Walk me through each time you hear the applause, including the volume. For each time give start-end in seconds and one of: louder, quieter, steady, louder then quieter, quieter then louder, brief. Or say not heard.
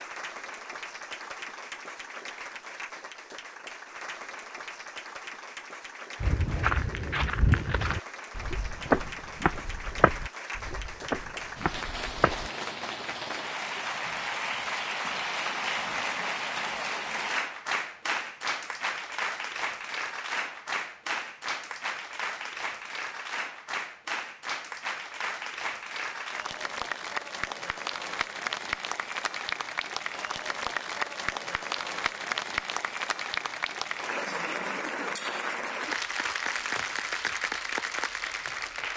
0.0-38.9 louder.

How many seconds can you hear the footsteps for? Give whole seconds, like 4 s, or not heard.
6 s.